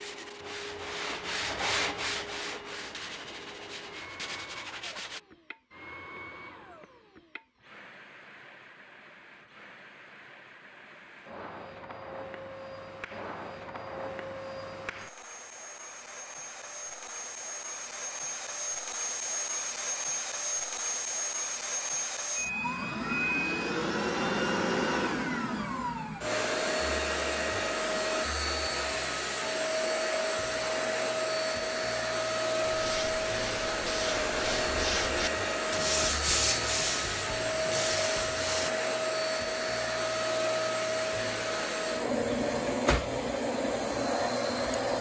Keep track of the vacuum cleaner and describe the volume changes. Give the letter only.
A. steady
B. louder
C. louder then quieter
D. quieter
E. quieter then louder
B.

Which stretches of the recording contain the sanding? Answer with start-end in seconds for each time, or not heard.
0.0-5.2, 32.6-38.7.